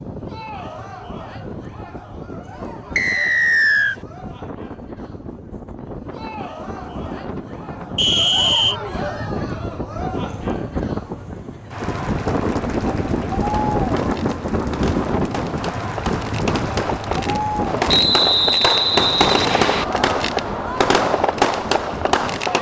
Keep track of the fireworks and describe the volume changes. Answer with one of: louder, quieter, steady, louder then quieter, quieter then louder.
louder.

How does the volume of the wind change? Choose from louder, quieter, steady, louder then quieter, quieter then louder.
louder then quieter.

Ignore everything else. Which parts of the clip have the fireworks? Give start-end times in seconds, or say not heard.
13.4-22.5.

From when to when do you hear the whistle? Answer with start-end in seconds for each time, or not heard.
3.0-4.0, 8.0-8.8, 17.9-19.9.